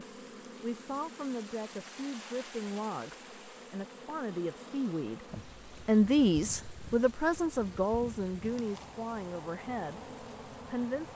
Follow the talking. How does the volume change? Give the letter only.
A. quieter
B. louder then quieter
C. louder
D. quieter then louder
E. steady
B.